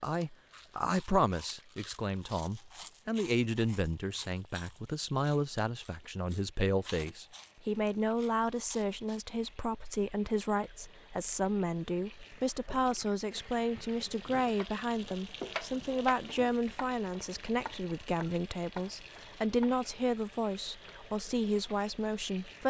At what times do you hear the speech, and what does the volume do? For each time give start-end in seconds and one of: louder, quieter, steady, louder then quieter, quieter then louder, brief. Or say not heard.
0.0-22.6 steady.